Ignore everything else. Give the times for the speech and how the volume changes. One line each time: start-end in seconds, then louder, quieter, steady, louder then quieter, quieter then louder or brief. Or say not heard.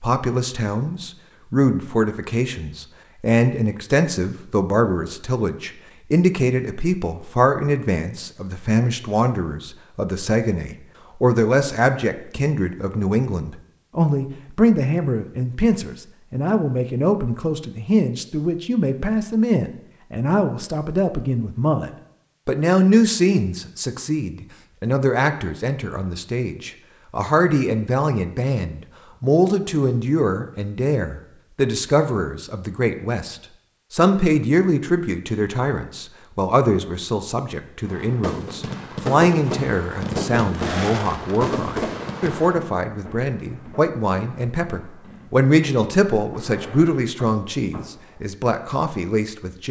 0.0-49.6 steady.